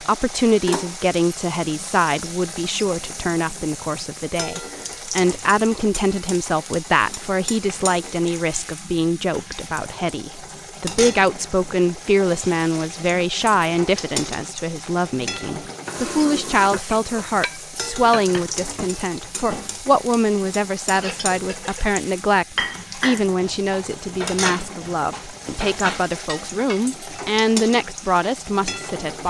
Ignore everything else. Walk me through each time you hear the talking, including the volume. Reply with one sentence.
You can hear the talking from 0.0 to 29.2 s, at a steady volume.